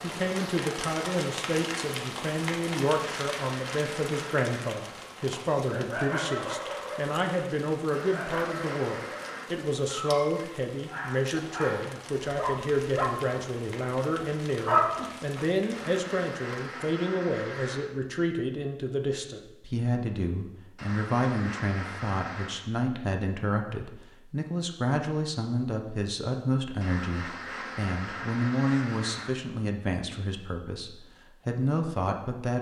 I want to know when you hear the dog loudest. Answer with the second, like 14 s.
15 s.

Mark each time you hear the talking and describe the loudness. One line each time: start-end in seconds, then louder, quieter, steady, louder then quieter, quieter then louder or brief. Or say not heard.
0.0-32.5 steady.